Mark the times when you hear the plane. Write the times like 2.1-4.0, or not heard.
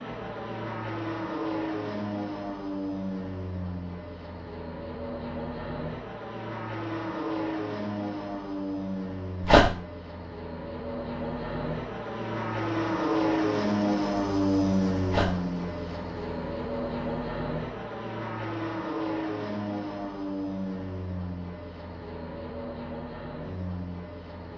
0.0-24.5.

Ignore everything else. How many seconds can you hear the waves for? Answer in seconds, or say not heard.
not heard.